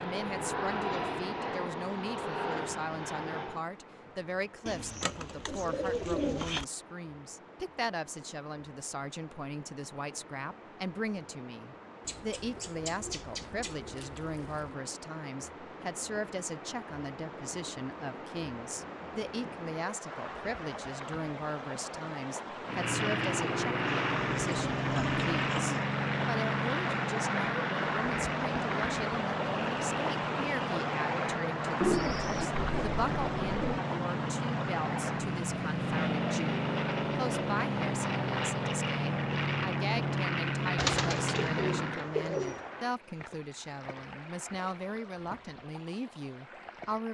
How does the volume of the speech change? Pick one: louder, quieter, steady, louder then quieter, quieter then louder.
steady.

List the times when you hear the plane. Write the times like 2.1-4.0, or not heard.
0.0-3.6, 22.6-42.1.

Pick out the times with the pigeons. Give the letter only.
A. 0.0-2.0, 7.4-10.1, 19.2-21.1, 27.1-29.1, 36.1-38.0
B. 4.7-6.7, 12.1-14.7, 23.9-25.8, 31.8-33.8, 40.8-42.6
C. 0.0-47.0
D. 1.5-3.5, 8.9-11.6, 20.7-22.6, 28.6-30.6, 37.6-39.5
B.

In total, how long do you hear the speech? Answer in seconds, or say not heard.
47 s.